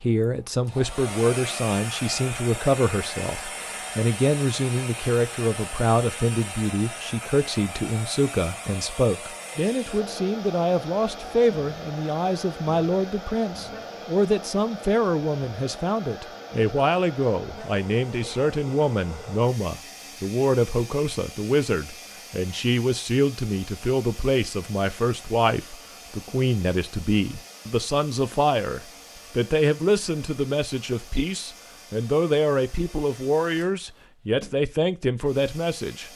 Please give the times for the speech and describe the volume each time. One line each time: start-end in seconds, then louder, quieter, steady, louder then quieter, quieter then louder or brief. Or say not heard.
0.0-36.1 steady.